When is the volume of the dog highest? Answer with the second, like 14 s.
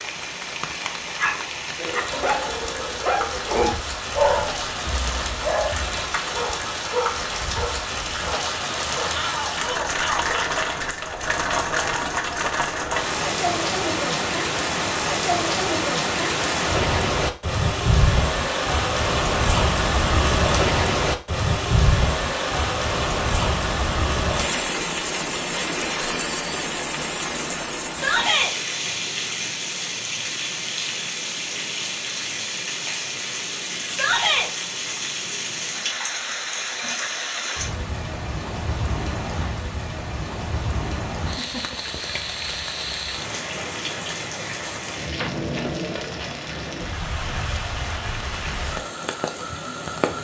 4 s.